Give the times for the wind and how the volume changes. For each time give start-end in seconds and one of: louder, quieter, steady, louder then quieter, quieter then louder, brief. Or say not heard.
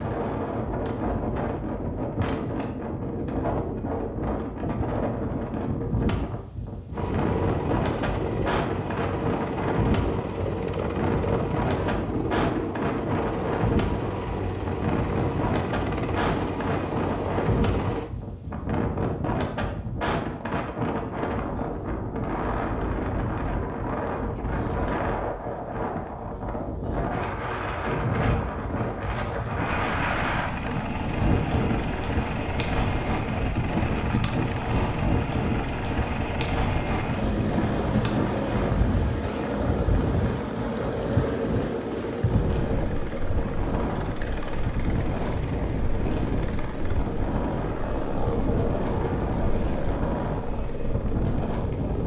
0.0-52.0 steady.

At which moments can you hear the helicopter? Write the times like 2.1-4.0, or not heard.
6.9-18.1, 29.6-52.0.